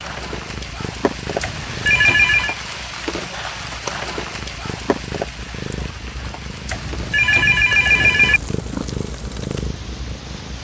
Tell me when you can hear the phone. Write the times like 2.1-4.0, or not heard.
1.4-2.5, 6.7-8.4.